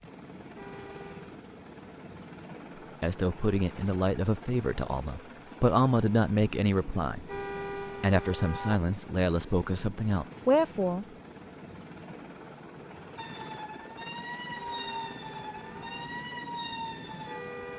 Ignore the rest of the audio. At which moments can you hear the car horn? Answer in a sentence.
The car horn can be heard from 0.6 to 1.4 s, from 7.2 to 8.8 s and from 14.6 to 16.1 s.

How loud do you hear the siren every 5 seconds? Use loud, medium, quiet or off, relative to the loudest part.
off, off, loud, loud.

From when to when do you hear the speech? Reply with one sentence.
You can hear the speech from 3.0 to 7.2 s and from 8.0 to 11.1 s.